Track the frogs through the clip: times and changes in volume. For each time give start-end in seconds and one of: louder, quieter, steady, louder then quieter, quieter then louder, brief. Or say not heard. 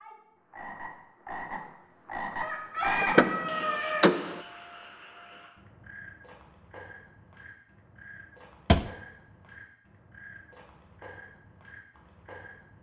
0.0-12.7 quieter.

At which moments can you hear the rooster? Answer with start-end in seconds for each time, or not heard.
2.4-4.1.